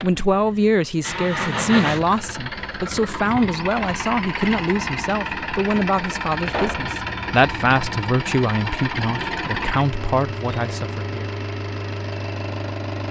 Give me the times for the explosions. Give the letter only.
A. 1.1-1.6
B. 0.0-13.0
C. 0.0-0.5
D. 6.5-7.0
D.